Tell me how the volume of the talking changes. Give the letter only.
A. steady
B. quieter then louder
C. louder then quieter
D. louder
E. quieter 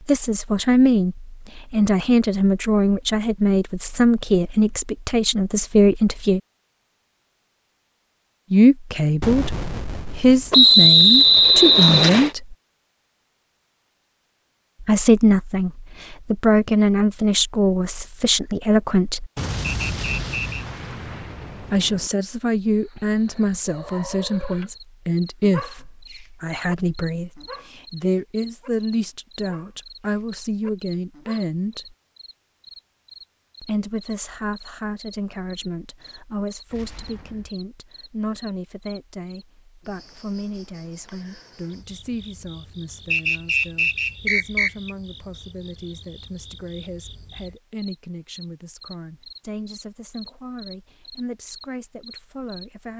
E.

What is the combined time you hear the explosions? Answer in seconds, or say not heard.
5 s.